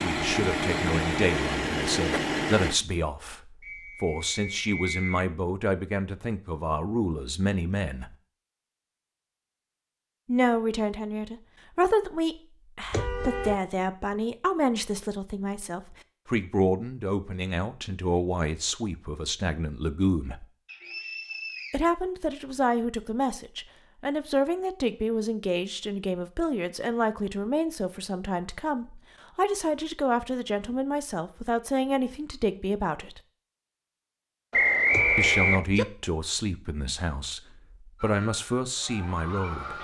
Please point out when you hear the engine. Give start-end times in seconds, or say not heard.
0.0-2.8.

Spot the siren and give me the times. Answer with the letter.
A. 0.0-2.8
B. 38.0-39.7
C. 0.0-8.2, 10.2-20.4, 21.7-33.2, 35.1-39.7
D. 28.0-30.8
B.